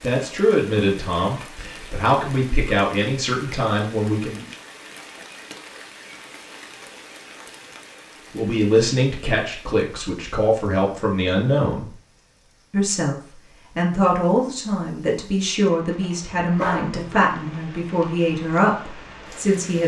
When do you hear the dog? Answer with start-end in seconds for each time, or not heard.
16.4-17.4.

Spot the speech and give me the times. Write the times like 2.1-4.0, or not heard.
0.0-4.5, 8.3-11.8, 12.7-19.8.